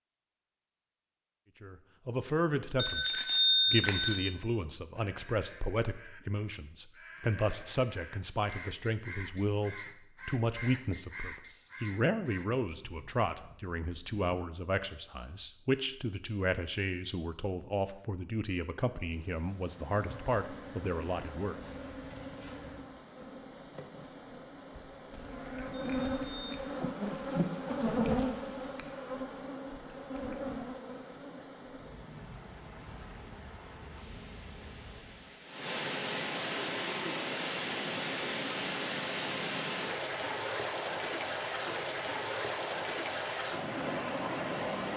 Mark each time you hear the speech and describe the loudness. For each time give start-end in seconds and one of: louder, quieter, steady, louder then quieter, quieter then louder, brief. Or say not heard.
1.6-21.6 steady.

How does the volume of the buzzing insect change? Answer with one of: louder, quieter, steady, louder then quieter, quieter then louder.
louder then quieter.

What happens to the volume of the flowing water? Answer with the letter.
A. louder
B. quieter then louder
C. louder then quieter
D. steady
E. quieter
A.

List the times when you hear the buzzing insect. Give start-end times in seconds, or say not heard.
19.6-35.4.